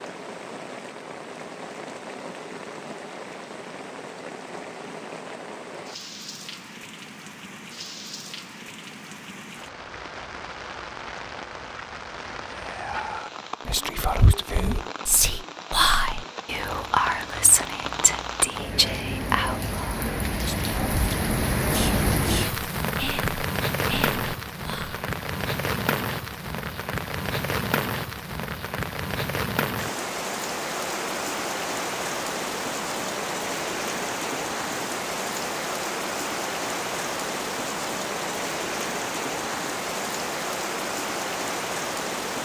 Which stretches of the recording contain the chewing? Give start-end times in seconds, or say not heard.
not heard.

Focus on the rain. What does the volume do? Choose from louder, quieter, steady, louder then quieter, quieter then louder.
louder.